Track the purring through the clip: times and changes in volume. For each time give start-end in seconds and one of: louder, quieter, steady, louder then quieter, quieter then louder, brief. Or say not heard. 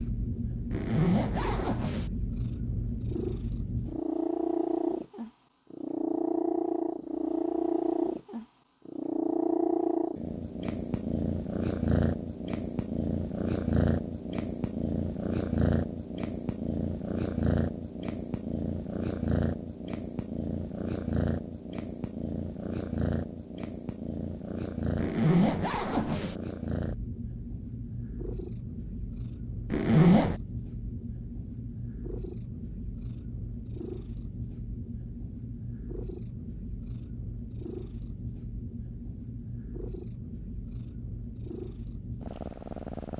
0.0-43.1 quieter.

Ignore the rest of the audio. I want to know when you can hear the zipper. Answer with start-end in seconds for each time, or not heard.
0.7-2.1, 24.9-26.4, 29.7-30.4.